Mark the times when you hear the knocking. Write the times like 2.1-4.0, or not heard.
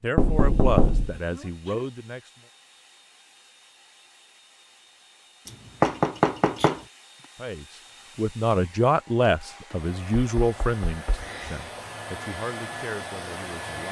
0.1-1.1, 5.5-6.8, 10.2-11.2.